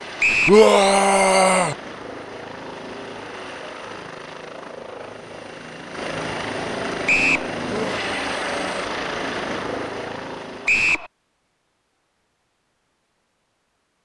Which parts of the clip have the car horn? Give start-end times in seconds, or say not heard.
not heard.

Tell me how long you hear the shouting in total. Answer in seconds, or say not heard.
2 s.